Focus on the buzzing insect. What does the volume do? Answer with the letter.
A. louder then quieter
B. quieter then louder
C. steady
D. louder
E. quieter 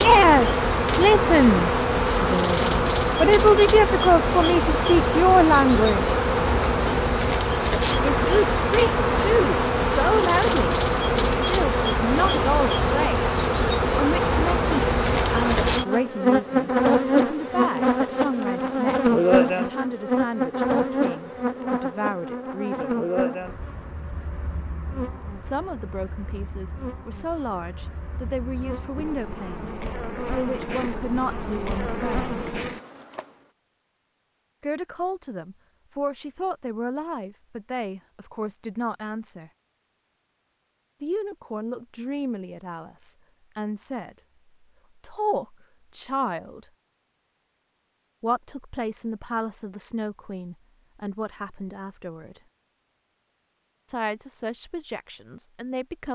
E.